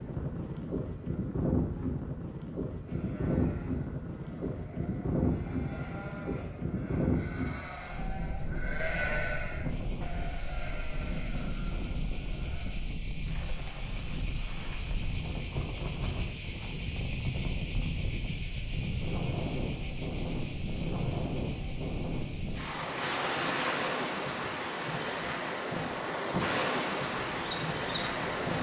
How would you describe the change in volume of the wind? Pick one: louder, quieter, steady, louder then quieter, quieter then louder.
quieter then louder.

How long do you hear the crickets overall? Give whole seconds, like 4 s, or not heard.
19 s.